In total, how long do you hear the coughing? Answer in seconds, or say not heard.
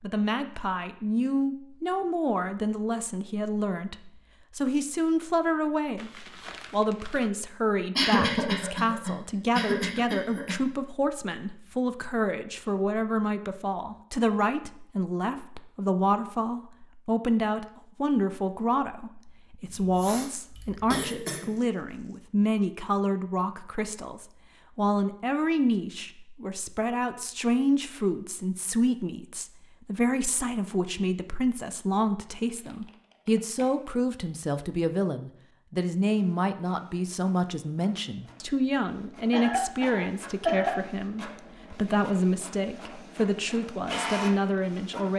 6 s.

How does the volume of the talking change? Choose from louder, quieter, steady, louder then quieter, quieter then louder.
steady.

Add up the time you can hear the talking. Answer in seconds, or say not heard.
45 s.